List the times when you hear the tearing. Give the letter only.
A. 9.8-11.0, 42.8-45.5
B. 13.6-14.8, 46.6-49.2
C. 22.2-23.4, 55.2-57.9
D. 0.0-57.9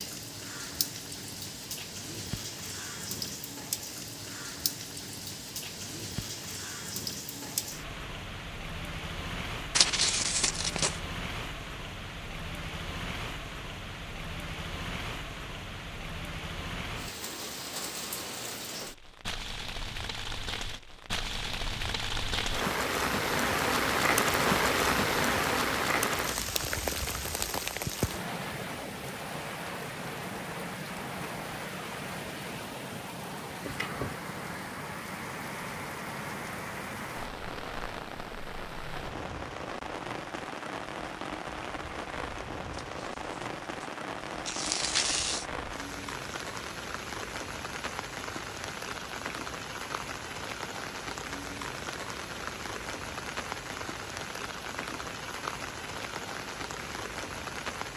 A.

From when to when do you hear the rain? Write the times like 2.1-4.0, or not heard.
0.0-57.9.